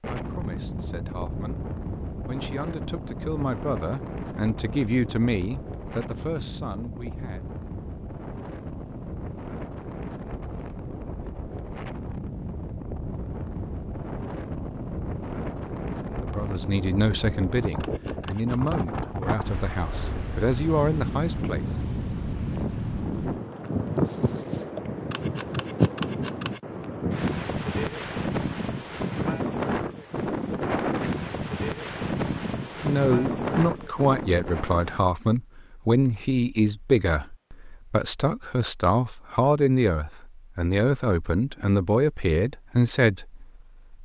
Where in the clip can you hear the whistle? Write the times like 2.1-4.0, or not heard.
not heard.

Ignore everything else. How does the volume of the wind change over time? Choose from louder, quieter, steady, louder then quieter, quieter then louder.
louder.